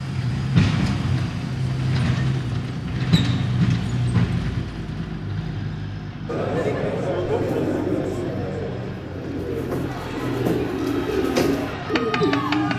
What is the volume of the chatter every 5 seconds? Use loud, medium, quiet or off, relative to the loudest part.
off, loud, medium.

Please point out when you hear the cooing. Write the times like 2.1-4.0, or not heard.
7.4-12.7.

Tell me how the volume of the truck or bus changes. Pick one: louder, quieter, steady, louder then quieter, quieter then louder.
quieter.